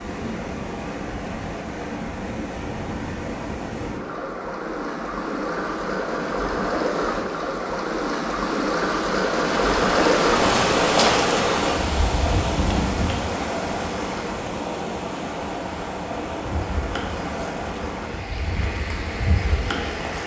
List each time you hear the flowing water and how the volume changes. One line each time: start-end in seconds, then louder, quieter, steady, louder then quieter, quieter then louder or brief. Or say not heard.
0.0-20.2 louder then quieter.